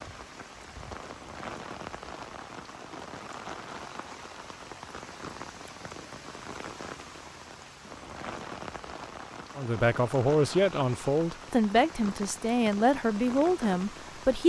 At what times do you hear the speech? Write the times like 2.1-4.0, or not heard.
9.6-14.4.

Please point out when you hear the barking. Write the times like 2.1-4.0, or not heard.
not heard.